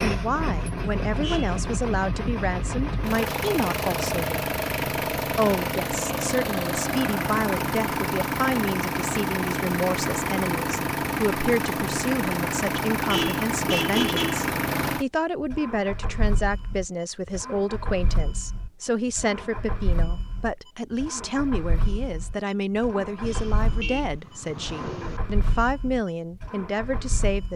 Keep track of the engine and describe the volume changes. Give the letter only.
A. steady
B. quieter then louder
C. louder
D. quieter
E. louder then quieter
D.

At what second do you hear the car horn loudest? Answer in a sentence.
The volume of the car horn peaks at 14 seconds.